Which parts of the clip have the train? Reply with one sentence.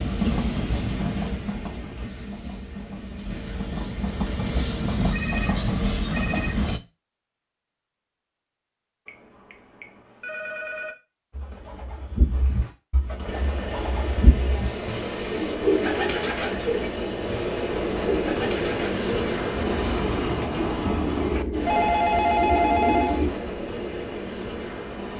You can hear the train from 0.0 to 6.8 s and from 13.2 to 25.1 s.